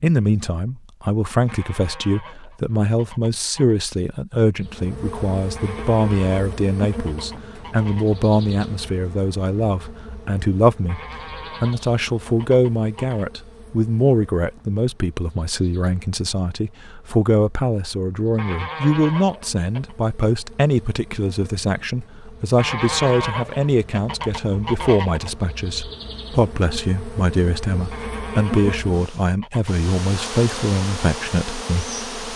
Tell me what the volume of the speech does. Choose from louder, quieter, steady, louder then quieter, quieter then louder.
steady.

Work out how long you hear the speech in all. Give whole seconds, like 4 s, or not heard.
32 s.